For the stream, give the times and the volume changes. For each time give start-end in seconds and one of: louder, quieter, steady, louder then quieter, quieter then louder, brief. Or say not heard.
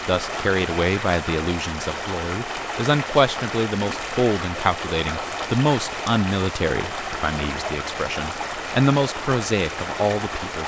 0.0-10.6 steady.